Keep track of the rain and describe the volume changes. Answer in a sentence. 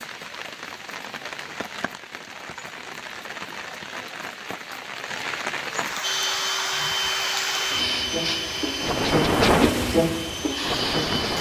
The loudness of the rain goes up.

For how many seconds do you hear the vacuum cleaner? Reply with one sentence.
The vacuum cleaner can be heard for 5 seconds in total.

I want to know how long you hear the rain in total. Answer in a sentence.
The rain can be heard for 11 seconds in total.